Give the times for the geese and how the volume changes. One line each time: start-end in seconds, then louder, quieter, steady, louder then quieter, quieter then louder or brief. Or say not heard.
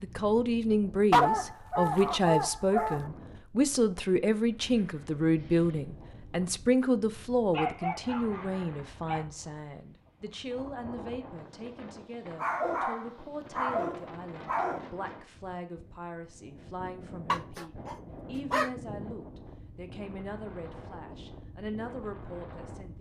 not heard.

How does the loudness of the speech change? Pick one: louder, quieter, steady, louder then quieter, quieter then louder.
quieter.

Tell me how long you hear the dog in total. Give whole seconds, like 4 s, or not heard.
8 s.